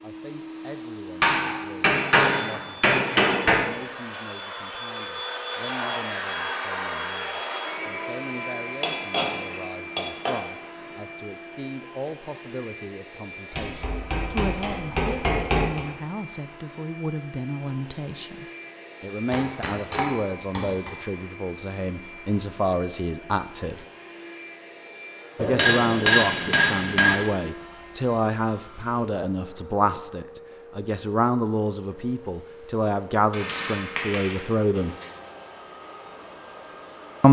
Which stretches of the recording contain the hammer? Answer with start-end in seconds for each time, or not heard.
1.2-3.6, 8.8-10.3, 13.6-15.8, 19.3-20.9, 25.4-27.2, 33.3-35.0.